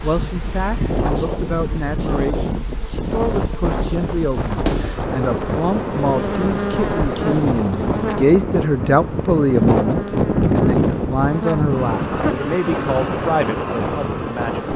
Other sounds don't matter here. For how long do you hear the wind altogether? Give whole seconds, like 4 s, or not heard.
15 s.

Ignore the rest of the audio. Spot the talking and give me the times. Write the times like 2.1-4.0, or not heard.
0.0-14.7.